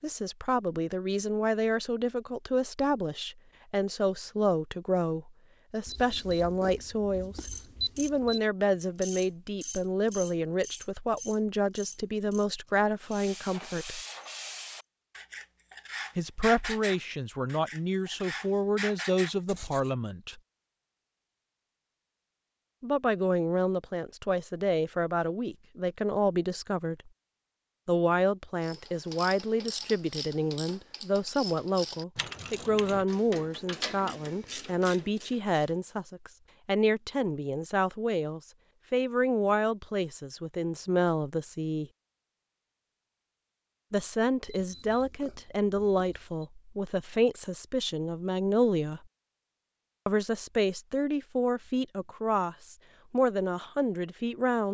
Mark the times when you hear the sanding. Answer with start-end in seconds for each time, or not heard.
13.1-19.9.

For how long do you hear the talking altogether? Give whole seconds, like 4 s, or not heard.
46 s.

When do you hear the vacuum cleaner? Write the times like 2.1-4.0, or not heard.
not heard.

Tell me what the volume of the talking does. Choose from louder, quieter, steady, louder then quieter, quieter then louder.
steady.